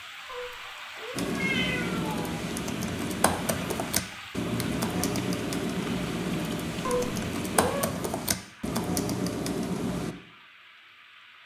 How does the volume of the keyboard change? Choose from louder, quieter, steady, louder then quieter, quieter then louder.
steady.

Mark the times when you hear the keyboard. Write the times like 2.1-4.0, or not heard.
1.1-10.2.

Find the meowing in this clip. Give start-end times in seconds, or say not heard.
0.2-2.3, 6.8-7.9.